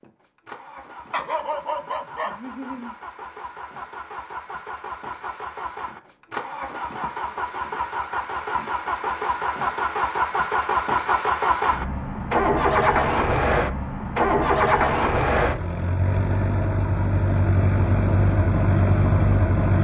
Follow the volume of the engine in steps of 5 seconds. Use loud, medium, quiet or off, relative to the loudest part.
quiet, medium, loud, loud.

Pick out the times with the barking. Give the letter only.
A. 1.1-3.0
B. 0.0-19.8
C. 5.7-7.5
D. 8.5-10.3
A.